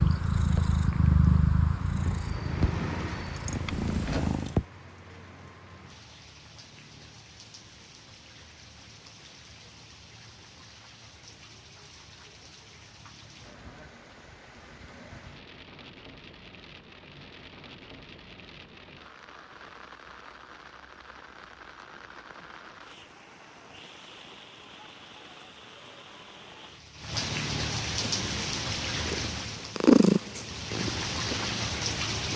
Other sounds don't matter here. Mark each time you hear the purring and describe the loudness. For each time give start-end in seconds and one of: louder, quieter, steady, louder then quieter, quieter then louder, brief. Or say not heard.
0.0-4.7 quieter then louder
28.0-32.3 louder then quieter.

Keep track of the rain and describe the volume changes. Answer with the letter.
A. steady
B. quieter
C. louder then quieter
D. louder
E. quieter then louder
E.